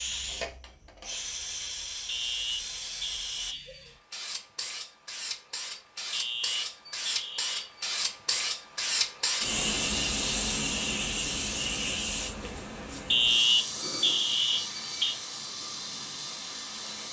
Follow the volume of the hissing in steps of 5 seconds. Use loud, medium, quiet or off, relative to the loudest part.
medium, loud, loud, medium.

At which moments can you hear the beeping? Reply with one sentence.
You can hear the beeping from 2.0 to 3.9 s, from 6.1 to 7.9 s and from 13.1 to 15.2 s.